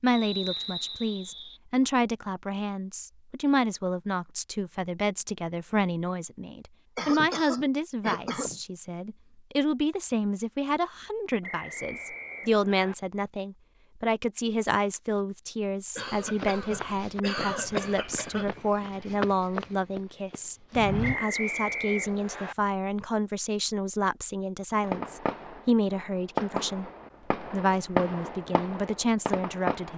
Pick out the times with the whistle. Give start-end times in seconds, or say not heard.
0.1-1.6, 11.4-12.9, 21.0-22.6.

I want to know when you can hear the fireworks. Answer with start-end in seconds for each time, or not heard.
24.8-29.9.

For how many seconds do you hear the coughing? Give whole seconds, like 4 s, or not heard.
4 s.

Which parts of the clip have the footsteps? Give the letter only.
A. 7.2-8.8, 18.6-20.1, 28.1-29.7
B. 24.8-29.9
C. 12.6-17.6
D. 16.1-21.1
D.